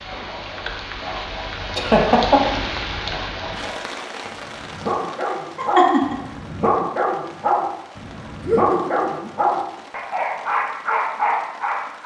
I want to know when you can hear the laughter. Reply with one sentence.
The laughter can be heard from 1.8 to 2.4 s, from 5.5 to 6.2 s and from 8.4 to 9.3 s.